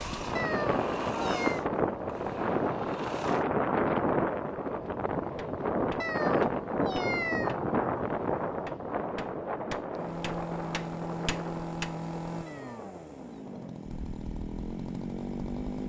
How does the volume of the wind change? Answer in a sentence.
The volume of the wind goes down.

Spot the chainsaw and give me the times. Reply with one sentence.
You can hear the chainsaw from 0.0 to 3.5 s and from 9.9 to 15.8 s.